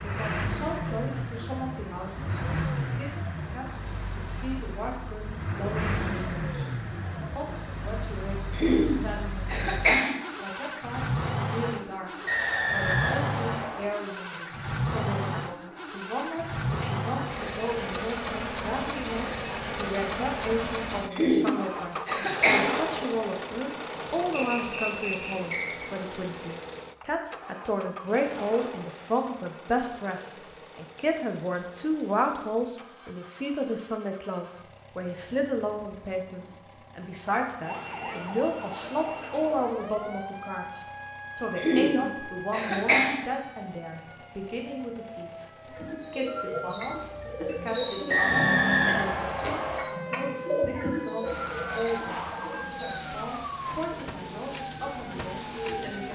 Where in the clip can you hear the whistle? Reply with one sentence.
The whistle can be heard from 12.2 to 13.9 s, from 24.4 to 25.9 s and from 48.0 to 49.9 s.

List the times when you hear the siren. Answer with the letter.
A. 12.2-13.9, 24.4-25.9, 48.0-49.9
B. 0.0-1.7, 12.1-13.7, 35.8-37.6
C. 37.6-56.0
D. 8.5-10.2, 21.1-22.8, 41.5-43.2
C.